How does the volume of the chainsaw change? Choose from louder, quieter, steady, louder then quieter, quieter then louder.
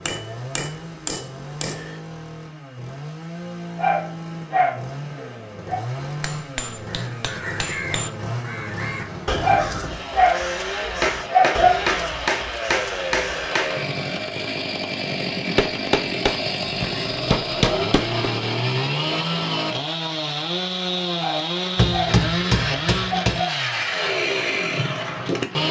louder.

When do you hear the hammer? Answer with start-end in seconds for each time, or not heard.
0.1-2.0, 6.2-8.1, 11.0-13.8, 15.6-18.1, 21.8-23.4.